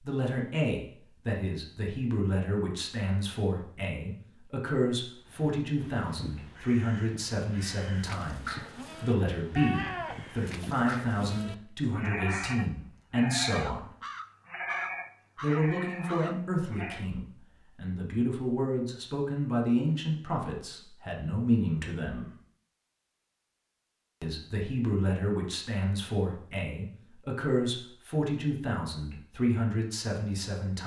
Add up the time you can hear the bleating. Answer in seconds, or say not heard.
9 s.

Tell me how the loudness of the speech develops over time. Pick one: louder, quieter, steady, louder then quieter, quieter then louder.
steady.